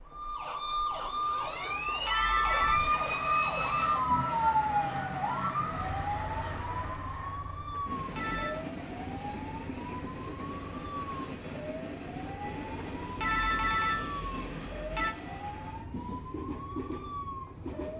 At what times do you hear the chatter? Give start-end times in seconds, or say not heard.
not heard.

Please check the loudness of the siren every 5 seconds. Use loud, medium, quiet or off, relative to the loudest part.
loud, medium, quiet, quiet.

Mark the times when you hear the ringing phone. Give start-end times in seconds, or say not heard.
1.6-2.8, 7.7-8.7, 12.8-15.2.